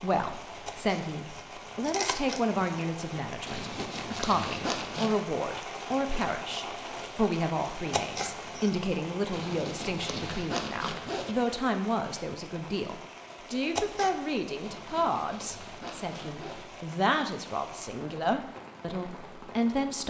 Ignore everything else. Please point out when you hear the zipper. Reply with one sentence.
You can hear the zipper from 3.5 to 5.2 s, from 9.3 to 11.3 s and from 14.6 to 16.6 s.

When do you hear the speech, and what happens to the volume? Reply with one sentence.
You can hear the speech from 0.0 to 20.0 s, at a steady volume.